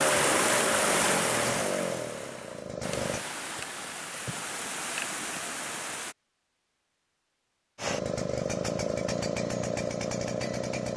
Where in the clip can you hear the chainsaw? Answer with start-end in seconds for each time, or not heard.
0.0-3.2, 7.8-10.9.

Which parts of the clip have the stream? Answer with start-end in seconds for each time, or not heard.
0.0-6.2.